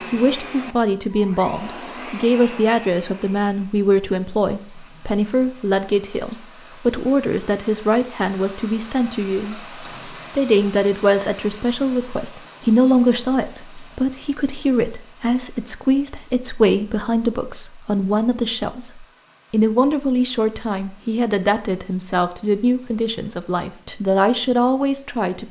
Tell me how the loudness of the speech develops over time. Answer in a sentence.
The loudness of the speech stays about the same.